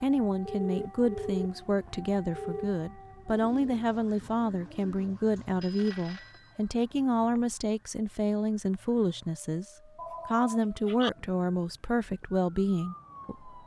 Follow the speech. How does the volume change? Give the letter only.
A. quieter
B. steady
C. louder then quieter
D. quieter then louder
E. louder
B.